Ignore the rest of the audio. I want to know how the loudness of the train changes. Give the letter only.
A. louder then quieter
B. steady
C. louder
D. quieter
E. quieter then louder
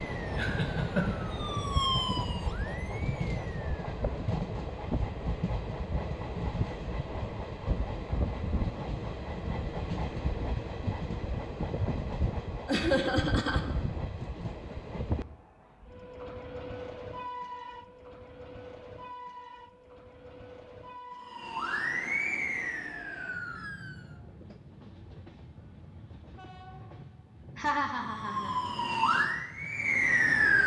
D.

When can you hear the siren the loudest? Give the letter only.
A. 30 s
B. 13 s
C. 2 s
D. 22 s
A.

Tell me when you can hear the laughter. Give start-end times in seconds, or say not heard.
0.3-1.2, 12.7-13.6, 27.6-28.6.